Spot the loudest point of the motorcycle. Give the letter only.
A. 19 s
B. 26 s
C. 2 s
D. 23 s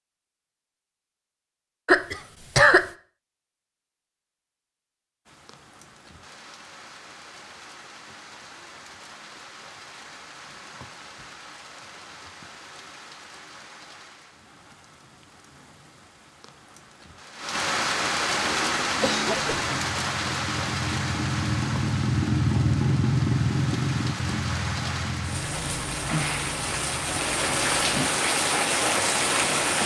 D.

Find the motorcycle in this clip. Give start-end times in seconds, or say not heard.
18.4-27.9.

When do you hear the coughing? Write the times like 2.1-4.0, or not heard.
1.9-2.9, 18.9-19.7.